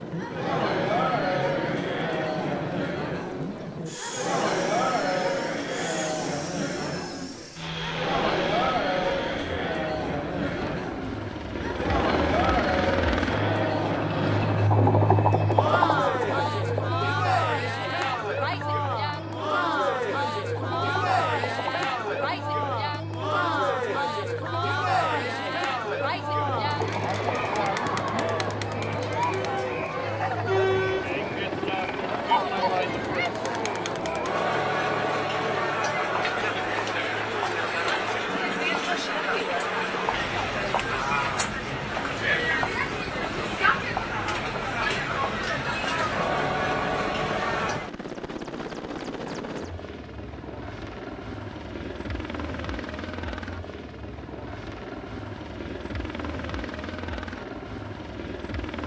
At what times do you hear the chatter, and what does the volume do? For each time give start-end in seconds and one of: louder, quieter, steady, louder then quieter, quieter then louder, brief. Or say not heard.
0.1-47.9 steady.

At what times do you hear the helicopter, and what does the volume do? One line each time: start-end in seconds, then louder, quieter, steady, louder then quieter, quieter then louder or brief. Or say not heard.
0.0-58.8 louder then quieter.